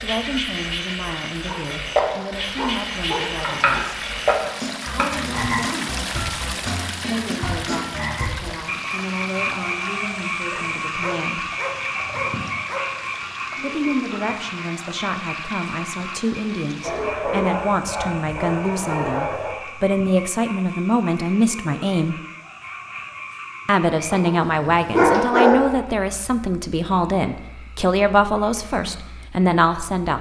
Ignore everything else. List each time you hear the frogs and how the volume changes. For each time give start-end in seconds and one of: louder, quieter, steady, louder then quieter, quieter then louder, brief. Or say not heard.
0.0-29.9 quieter.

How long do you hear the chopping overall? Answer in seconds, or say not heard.
2 s.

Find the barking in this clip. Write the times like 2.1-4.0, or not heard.
1.4-3.8, 10.5-12.8, 16.8-19.6, 24.1-25.8.